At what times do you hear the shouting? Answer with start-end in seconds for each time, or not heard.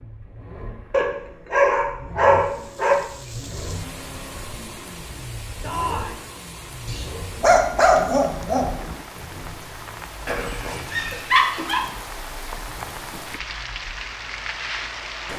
5.6-6.2.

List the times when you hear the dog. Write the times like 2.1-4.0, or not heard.
0.9-3.0, 6.8-8.7, 10.2-11.8.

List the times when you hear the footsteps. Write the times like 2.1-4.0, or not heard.
not heard.